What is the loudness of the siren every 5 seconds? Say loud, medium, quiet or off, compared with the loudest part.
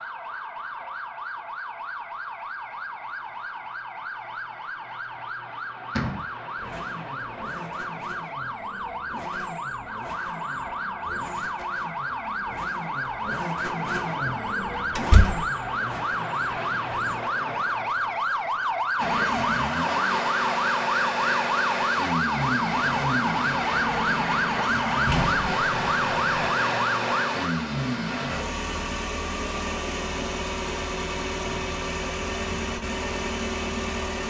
medium, medium, medium, loud, loud, loud, off.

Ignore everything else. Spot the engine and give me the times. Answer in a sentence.
The engine can be heard from 6.5 to 17.1 s and from 18.9 to 34.2 s.